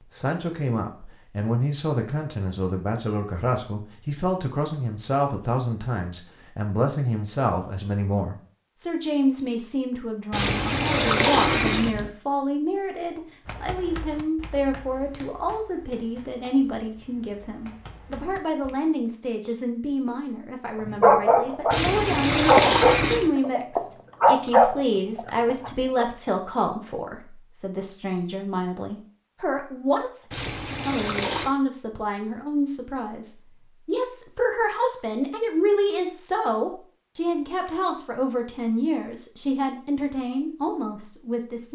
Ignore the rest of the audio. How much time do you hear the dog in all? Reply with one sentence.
You can hear the dog for 5 seconds altogether.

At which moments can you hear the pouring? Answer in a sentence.
You can hear the pouring from 10.3 to 12.1 s, from 21.7 to 23.3 s and from 30.3 to 31.5 s.